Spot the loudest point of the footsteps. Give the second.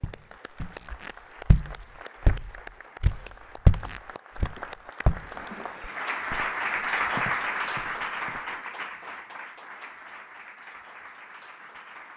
4 s.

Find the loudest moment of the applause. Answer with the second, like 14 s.
7 s.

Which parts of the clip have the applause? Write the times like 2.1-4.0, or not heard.
0.0-12.1.